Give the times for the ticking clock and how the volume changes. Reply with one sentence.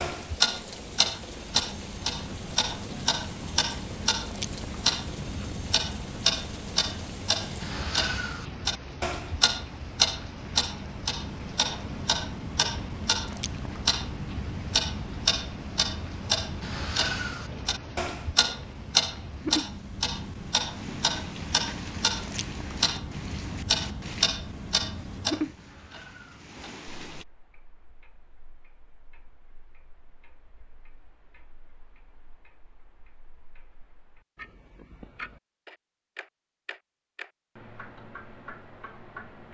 You can hear the ticking clock from 0.0 to 39.4 s, getting quieter.